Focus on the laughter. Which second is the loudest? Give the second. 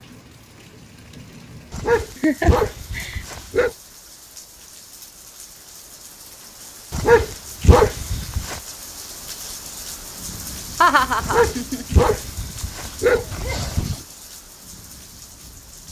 11 s.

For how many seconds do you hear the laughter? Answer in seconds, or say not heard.
2 s.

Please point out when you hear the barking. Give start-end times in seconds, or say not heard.
1.7-3.7, 6.9-8.6, 11.2-14.0.